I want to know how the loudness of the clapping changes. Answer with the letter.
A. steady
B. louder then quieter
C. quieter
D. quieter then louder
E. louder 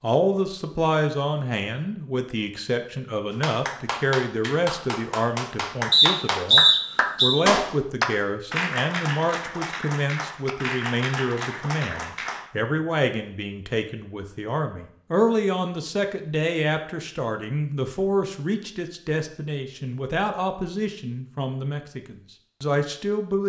B.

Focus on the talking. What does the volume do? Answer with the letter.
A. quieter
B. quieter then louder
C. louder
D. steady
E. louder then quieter
D.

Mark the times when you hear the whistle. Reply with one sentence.
You can hear the whistle from 5.9 to 7.3 s.